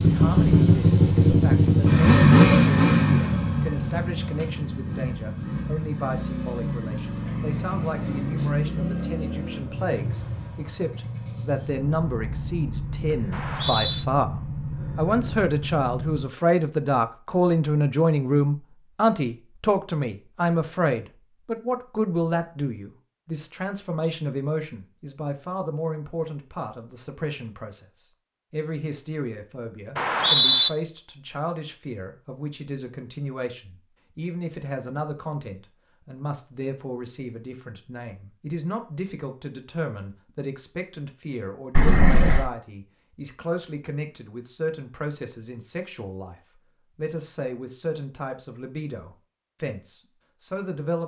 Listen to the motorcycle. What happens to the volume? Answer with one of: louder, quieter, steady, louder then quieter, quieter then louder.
quieter.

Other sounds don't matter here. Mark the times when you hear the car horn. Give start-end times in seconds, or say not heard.
41.8-42.5.